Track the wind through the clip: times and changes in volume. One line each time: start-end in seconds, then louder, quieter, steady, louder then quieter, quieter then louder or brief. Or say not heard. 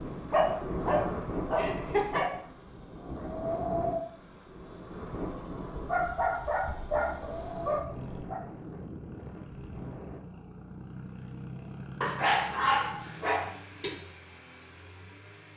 0.0-10.2 quieter.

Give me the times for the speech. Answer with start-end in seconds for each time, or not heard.
not heard.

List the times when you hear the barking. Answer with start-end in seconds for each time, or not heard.
0.3-2.3, 5.7-8.4, 12.0-13.9.